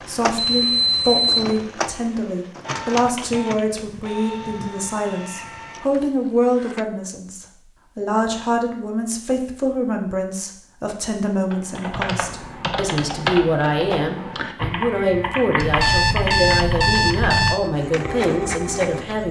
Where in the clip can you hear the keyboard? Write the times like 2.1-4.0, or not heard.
11.5-19.2.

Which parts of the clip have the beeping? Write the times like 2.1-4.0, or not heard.
0.5-1.4, 15.6-17.6.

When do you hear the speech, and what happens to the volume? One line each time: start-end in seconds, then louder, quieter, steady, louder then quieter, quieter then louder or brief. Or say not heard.
0.0-19.2 steady.